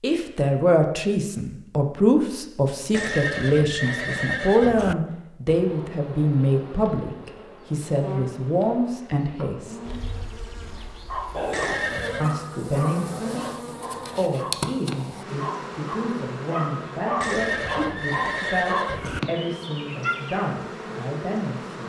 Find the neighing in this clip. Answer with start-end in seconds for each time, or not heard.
2.9-5.0, 11.5-12.3, 17.2-19.2.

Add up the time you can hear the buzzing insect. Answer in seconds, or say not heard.
16 s.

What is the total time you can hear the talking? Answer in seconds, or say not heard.
19 s.